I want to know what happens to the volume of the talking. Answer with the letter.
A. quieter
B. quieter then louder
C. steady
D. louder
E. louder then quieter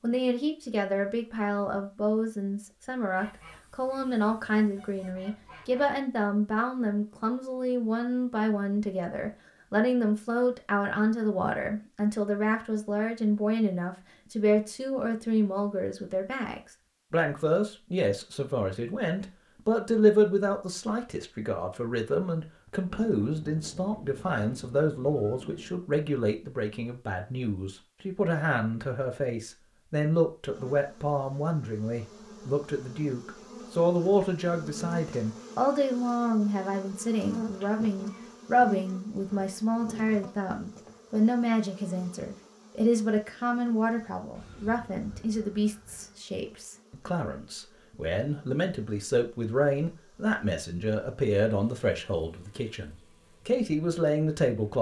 C.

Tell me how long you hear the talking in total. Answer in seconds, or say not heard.
55 s.